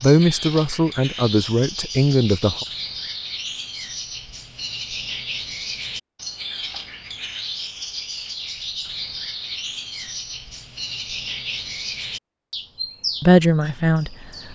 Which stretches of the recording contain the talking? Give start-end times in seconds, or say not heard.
0.0-2.6, 13.2-14.2.